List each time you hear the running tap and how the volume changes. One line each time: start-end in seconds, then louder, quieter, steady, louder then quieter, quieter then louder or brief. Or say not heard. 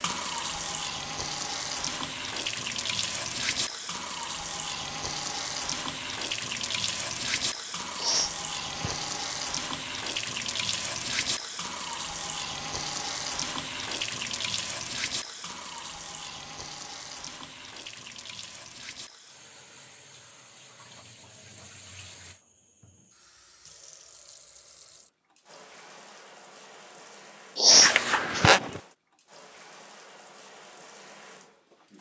0.0-31.9 quieter.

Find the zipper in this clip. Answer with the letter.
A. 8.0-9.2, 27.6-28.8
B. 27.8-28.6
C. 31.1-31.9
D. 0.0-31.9
B.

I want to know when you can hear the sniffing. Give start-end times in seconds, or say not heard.
8.0-9.2, 27.6-28.8.